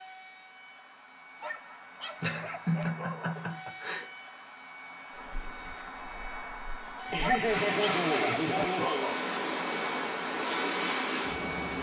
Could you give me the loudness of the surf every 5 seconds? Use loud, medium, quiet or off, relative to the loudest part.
off, loud, loud.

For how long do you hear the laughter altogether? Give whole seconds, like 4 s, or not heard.
4 s.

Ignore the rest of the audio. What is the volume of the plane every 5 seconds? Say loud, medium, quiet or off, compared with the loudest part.
medium, loud, loud.